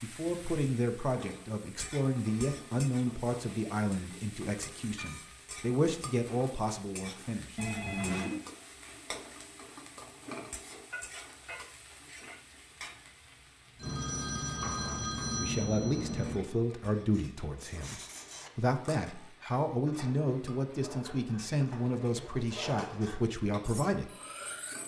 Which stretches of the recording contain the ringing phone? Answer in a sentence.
You can hear the ringing phone from 7.5 to 8.4 s and from 13.8 to 16.4 s.